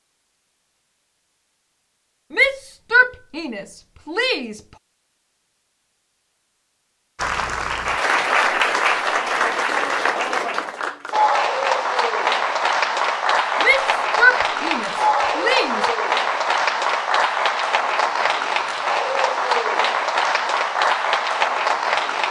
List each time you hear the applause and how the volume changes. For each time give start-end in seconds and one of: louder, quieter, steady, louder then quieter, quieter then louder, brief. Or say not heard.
7.2-22.2 steady.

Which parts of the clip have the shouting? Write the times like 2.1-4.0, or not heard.
2.3-4.6, 13.6-15.9.